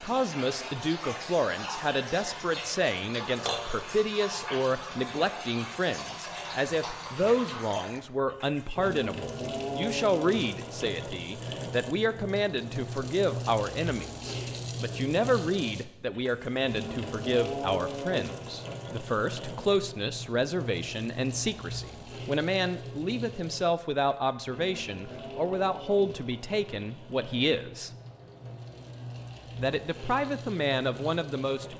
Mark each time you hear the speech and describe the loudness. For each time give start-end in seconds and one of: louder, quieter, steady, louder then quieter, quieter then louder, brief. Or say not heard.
0.0-27.9 steady
29.6-31.7 brief.